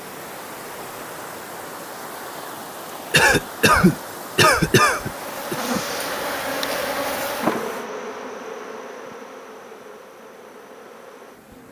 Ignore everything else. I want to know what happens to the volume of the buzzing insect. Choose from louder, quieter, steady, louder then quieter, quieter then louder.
quieter.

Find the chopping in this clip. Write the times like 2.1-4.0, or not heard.
not heard.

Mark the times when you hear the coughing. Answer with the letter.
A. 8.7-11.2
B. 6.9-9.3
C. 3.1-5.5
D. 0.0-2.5
C.